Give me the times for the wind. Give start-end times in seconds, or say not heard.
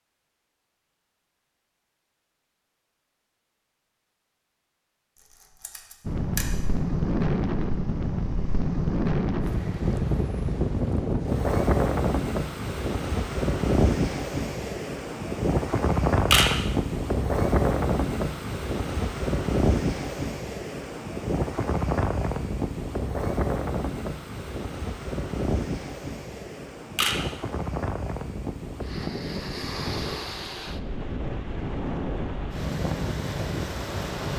6.0-34.3.